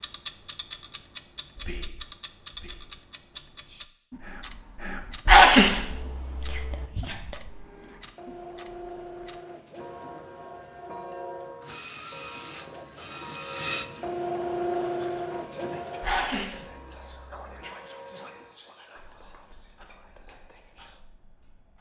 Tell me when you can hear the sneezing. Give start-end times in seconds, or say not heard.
5.2-6.8, 16.0-17.6.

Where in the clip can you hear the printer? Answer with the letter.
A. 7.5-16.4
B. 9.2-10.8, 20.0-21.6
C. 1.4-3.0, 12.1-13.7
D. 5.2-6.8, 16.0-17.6
A.